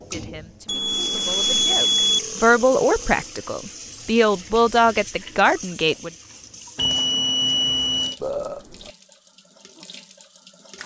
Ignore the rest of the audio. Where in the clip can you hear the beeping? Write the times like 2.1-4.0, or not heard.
0.7-2.2, 6.8-8.2.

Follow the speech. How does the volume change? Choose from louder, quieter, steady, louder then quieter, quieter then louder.
louder.